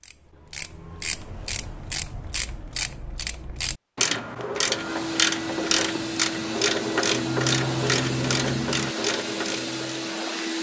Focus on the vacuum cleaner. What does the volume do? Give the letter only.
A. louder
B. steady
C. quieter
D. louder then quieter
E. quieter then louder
B.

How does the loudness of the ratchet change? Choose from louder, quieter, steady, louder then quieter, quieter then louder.
louder.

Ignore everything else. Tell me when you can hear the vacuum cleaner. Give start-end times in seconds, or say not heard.
4.6-10.5.